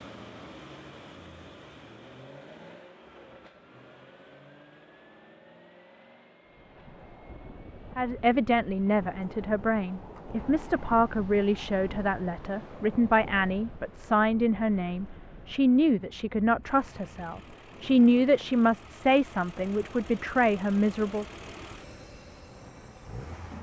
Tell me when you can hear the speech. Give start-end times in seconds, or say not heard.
8.0-21.2.